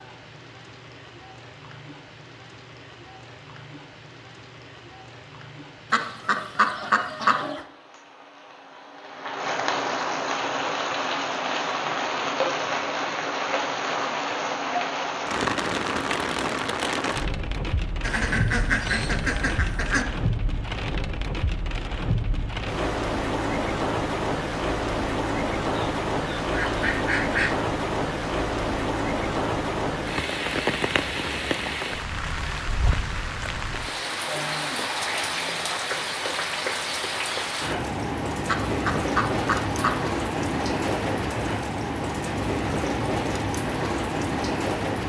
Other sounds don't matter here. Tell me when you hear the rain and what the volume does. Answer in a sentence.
You can hear the rain from 0.0 to 45.0 s, getting louder.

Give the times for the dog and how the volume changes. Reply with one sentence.
The dog can't be heard in this clip.